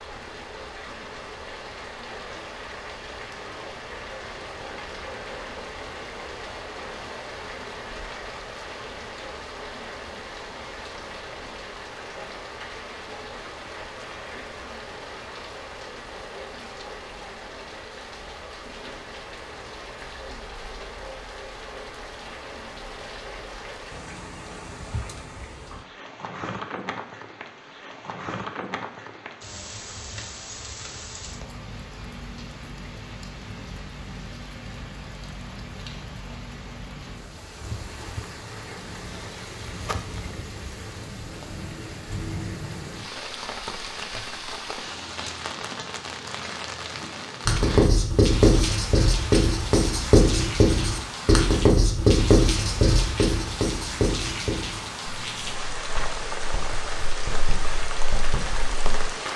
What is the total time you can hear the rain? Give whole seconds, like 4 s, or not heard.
59 s.